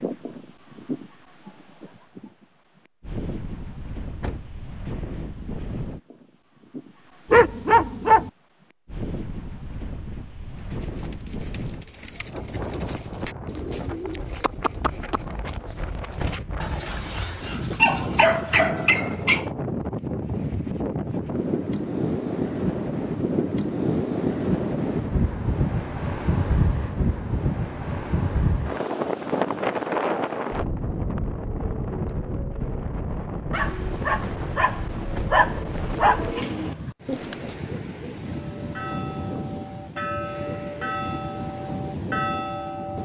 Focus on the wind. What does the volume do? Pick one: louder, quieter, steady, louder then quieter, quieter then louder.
louder then quieter.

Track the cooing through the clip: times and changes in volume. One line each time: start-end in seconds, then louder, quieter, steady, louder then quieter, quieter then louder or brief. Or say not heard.
10.6-16.4 louder then quieter
35.8-37.5 brief.